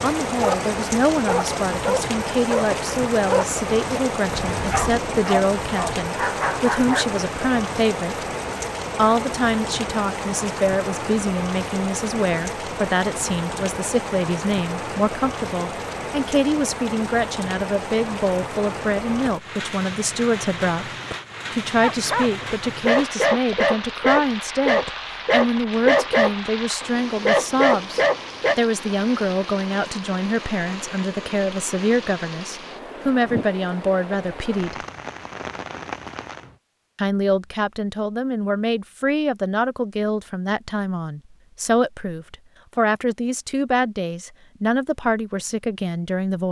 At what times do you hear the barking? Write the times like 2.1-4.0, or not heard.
0.3-7.0, 21.8-28.6.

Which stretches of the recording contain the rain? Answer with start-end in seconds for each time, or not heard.
0.0-36.6.